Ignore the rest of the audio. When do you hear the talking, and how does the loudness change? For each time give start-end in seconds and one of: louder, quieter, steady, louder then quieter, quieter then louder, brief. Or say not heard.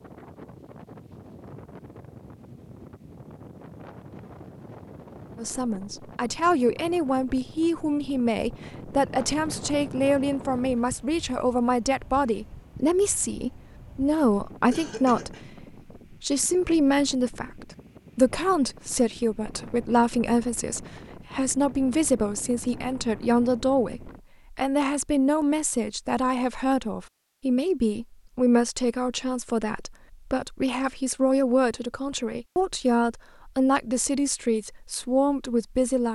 5.3-36.1 steady.